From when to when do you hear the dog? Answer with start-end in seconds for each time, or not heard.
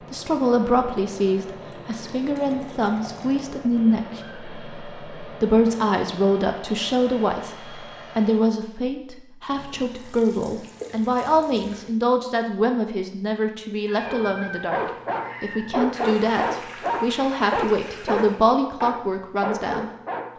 14.0-20.3.